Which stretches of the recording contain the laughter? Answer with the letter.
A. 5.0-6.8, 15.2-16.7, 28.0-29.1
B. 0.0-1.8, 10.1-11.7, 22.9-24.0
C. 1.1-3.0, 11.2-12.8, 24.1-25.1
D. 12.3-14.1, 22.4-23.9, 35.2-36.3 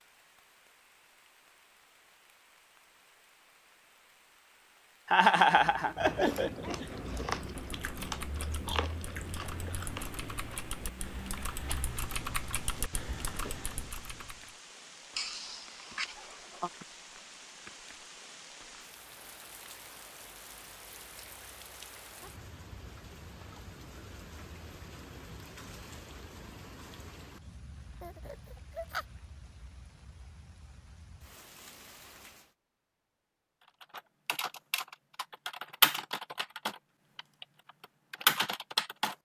A.